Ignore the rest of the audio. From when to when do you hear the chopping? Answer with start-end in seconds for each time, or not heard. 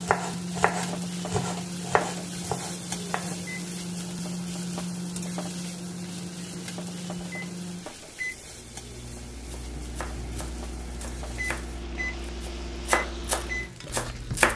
0.0-3.4, 9.4-14.5.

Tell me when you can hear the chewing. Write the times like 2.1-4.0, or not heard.
not heard.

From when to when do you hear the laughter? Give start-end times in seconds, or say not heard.
not heard.